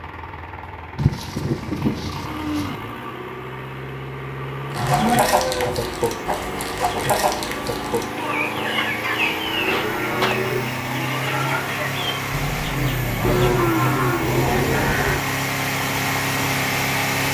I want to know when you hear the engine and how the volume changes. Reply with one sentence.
You can hear the engine from 0.0 to 17.3 s, getting louder.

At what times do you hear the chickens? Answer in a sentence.
You can hear the chickens from 4.7 to 13.7 s.